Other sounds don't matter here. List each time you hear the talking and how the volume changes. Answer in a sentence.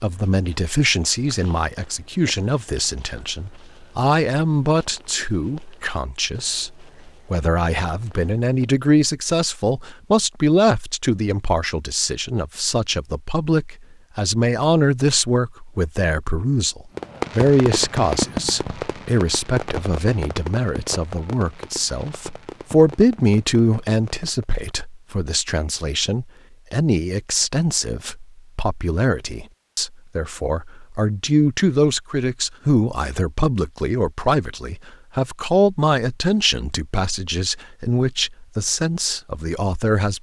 You can hear the talking from 0.0 to 40.1 s, at a steady volume.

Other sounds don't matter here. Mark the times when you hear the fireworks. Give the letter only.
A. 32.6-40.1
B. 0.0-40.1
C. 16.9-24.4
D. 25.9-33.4
C.